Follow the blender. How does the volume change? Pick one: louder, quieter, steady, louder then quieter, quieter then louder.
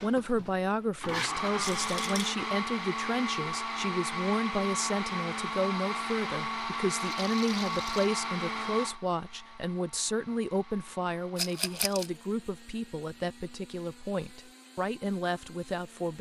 quieter.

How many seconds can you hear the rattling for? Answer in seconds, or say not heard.
3 s.